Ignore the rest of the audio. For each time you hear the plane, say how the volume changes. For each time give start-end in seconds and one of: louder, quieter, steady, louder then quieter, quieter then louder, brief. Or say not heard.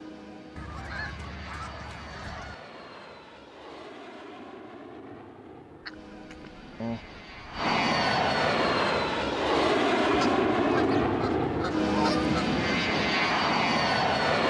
0.0-14.4 louder.